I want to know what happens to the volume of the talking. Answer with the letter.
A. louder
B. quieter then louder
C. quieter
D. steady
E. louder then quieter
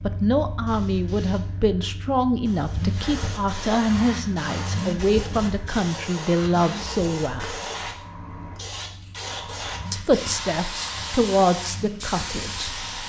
D.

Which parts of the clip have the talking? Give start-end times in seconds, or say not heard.
0.0-7.5, 9.9-13.0.